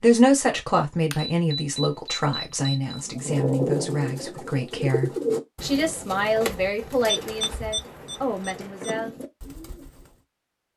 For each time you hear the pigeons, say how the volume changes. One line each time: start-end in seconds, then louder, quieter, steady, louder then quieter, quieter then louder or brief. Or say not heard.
3.0-10.2 quieter.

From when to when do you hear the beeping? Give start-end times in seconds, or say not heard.
1.1-2.8, 7.0-9.1.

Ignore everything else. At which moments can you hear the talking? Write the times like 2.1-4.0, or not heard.
0.0-9.2.